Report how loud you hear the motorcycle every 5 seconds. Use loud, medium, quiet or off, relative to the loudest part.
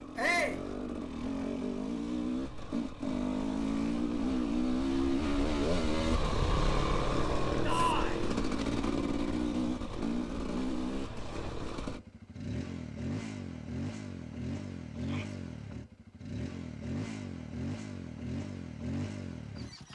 loud, loud, medium, medium.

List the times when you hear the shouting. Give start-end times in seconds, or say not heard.
0.1-0.6, 7.6-8.2, 14.9-15.3.